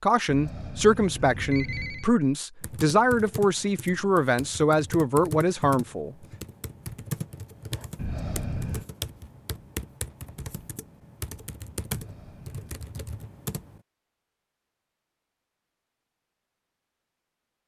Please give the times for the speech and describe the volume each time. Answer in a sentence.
The speech can be heard from 0.0 to 6.2 s, at a steady volume.